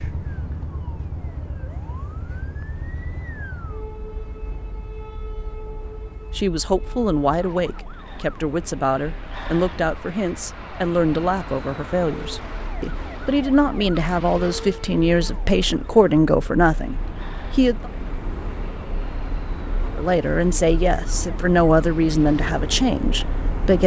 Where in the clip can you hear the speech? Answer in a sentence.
The speech can be heard from 6.3 to 17.9 s and from 19.9 to 23.8 s.